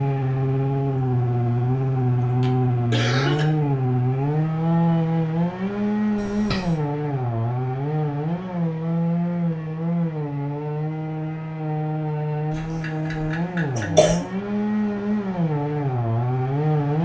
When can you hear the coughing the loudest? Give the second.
14 s.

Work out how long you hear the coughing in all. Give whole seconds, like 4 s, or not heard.
4 s.